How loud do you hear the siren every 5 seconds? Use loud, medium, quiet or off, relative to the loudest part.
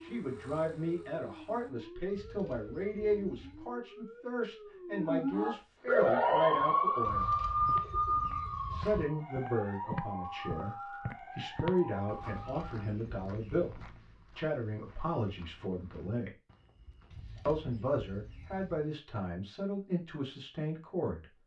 quiet, loud, quiet, off, off.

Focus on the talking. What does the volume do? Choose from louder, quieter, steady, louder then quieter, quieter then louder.
steady.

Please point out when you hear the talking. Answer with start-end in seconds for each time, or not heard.
0.0-7.3, 8.7-16.3, 17.4-21.2.